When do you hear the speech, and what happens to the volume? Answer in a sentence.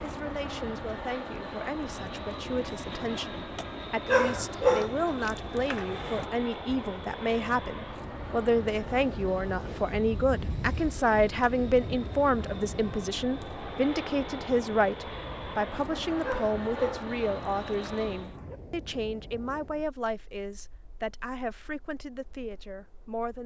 You can hear the speech from 0.0 to 23.4 s, getting louder then quieter.